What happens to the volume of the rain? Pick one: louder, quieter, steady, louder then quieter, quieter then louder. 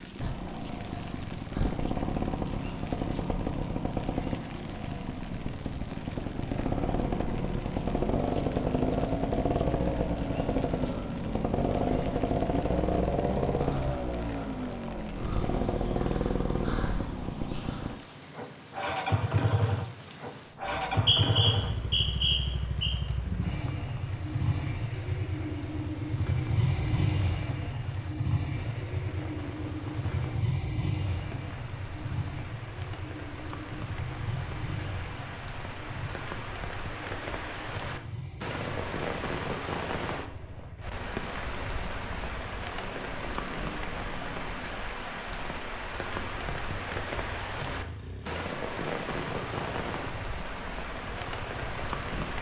louder.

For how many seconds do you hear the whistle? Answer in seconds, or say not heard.
2 s.